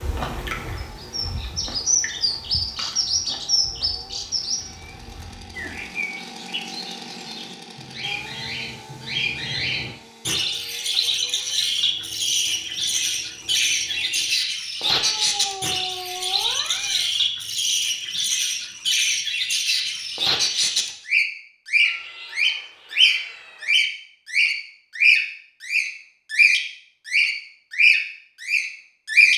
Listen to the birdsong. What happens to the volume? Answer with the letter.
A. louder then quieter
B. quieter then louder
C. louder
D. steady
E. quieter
C.